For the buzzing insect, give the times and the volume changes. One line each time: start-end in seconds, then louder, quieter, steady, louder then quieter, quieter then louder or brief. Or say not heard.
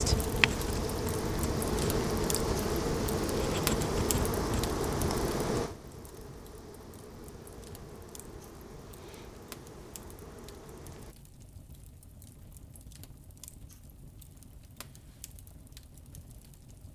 0.0-11.2 quieter.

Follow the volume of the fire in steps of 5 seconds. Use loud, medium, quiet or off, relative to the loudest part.
loud, medium, quiet, quiet.